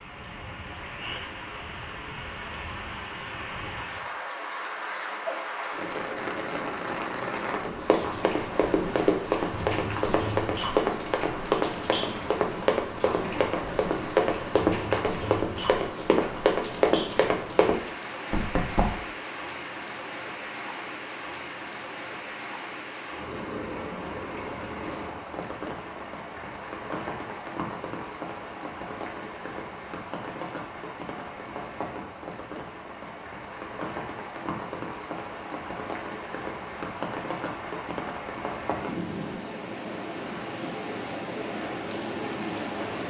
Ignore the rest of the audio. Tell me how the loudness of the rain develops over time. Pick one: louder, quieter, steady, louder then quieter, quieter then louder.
steady.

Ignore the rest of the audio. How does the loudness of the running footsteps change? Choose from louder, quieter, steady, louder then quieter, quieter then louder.
steady.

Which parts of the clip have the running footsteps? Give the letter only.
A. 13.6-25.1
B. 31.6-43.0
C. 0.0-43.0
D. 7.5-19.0
D.